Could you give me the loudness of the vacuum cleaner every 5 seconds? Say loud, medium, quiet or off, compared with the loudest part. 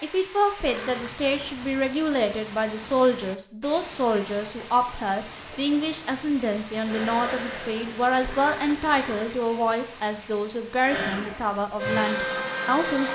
off, medium, loud.